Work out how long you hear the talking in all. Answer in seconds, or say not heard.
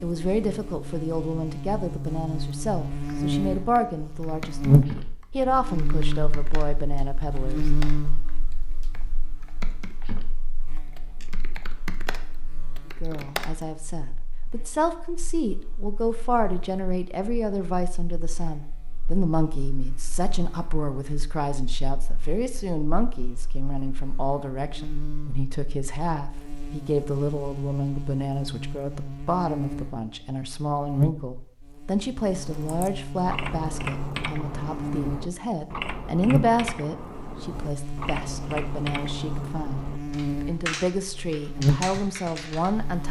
38 s.